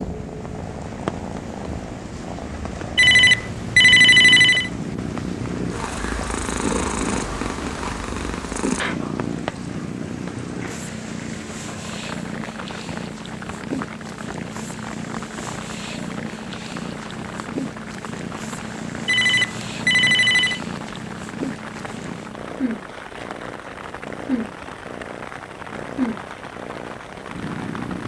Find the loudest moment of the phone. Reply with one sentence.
The volume of the phone peaks at 4 seconds.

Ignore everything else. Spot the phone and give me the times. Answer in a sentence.
You can hear the phone from 3.0 to 4.7 s and from 19.1 to 20.6 s.